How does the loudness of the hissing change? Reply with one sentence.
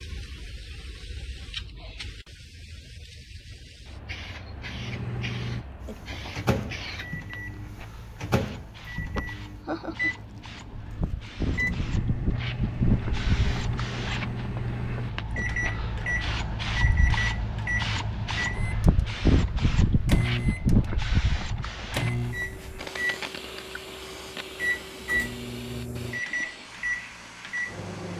The loudness of the hissing goes up, then down.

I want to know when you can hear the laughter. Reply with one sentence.
You can hear the laughter from 9.2 to 10.2 s.